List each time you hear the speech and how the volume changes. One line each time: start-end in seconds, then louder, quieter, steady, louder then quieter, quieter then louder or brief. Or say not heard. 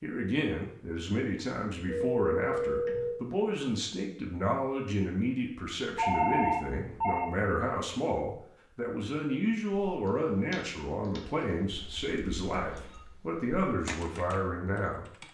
0.0-15.1 steady.